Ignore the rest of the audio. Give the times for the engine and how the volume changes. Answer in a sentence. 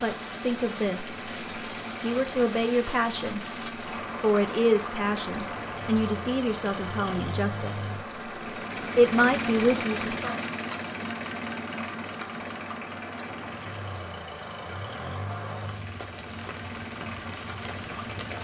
The engine can be heard from 0.0 to 18.3 s, getting louder then quieter.